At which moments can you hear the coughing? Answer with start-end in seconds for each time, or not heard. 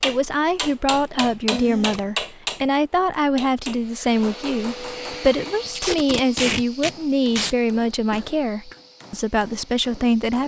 1.5-2.0, 8.1-8.8.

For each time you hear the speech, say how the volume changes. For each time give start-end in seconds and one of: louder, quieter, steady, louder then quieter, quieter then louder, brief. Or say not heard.
0.0-10.4 steady.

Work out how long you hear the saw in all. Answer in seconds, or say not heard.
not heard.